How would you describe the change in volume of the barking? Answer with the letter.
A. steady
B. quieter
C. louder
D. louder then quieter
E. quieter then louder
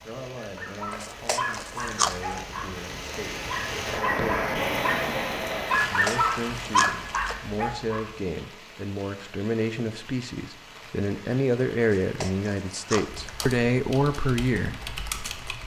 C.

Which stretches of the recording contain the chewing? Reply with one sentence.
The chewing can be heard from 0.9 to 2.4 s, from 5.8 to 7.3 s and from 12.0 to 13.5 s.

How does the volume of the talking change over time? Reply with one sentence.
The loudness of the talking goes up.